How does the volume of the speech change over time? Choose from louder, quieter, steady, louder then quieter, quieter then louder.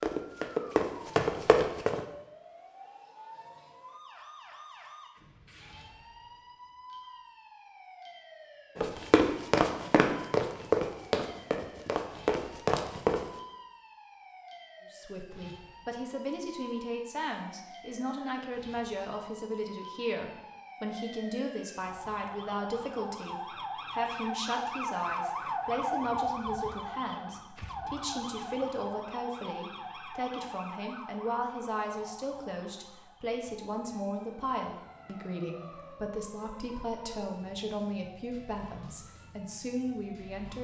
steady.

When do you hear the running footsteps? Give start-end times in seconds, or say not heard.
0.0-2.0, 8.8-13.2.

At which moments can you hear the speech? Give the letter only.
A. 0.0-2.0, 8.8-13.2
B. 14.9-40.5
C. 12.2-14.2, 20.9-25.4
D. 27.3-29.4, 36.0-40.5
B.